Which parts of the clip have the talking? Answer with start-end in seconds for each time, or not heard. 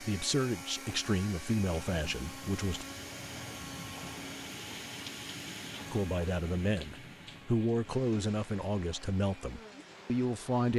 0.0-2.9, 5.9-10.7.